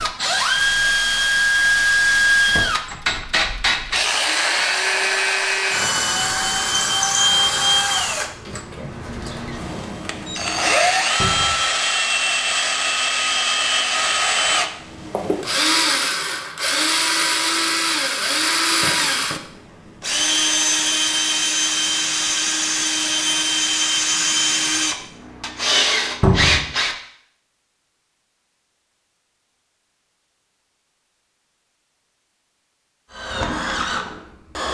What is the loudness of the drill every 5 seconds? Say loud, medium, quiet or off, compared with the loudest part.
loud, loud, loud, loud, loud, loud, medium.